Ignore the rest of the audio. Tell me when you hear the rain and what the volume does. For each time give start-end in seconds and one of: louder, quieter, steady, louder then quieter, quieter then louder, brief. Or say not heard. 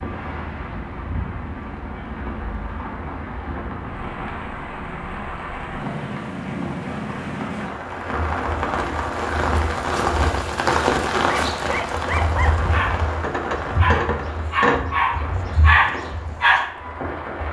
0.0-17.4 louder then quieter.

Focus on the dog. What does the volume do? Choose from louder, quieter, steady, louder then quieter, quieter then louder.
louder.